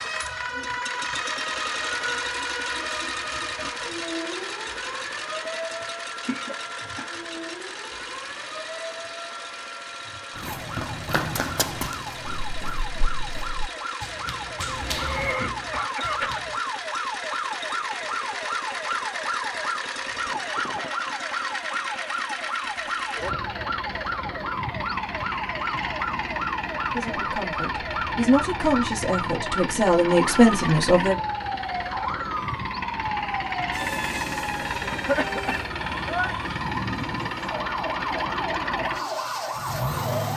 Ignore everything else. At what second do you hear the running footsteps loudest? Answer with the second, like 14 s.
11 s.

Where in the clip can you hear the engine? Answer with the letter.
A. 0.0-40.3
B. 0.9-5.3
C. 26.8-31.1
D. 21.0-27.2
A.